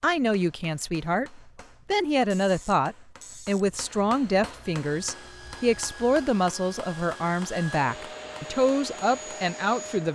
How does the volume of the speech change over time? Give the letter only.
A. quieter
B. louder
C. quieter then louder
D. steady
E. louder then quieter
D.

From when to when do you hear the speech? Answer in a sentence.
The speech can be heard from 0.0 to 10.1 s.